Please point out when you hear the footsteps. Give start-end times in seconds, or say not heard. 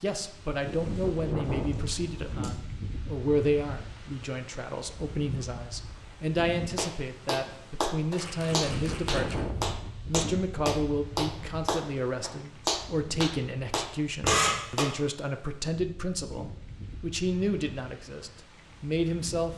not heard.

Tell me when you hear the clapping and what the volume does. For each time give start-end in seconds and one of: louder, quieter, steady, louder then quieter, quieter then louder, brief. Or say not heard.
6.8-14.9 steady.